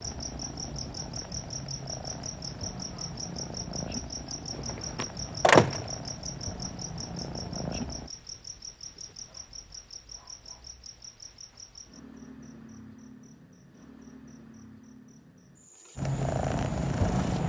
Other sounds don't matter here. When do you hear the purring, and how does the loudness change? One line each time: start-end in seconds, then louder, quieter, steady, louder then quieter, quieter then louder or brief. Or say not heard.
0.0-8.1 steady
15.9-17.4 brief.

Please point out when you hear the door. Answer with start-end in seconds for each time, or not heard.
4.5-5.9.